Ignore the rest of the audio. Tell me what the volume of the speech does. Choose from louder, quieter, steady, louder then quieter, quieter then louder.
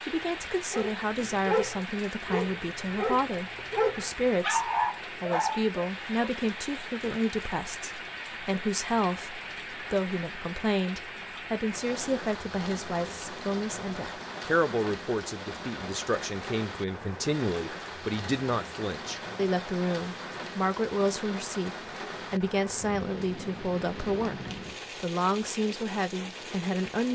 steady.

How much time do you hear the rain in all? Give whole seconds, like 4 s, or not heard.
27 s.